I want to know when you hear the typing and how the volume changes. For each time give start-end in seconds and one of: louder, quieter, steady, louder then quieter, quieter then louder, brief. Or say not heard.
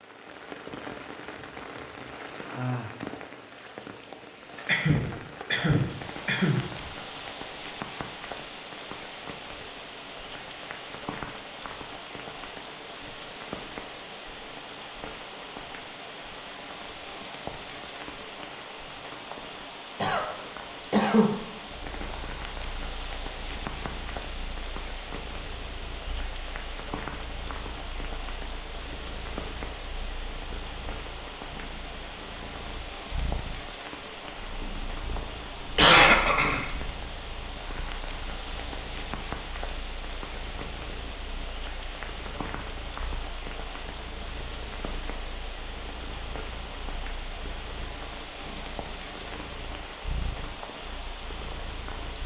not heard.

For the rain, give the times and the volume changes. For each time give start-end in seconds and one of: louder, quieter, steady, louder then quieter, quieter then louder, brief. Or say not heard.
0.0-52.2 steady.